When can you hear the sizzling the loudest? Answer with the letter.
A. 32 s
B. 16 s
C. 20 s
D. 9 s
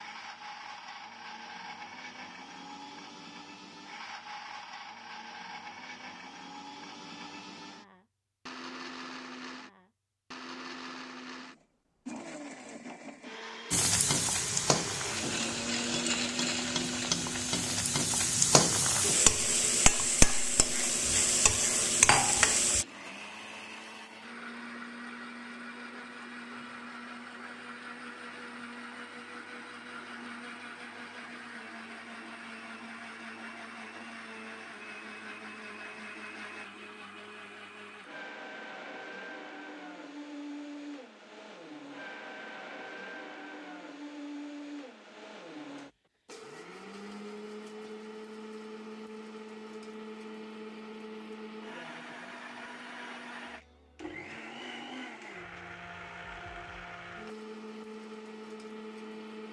C.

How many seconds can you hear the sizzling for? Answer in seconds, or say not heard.
9 s.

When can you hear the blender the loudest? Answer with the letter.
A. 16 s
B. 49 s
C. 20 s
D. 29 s
A.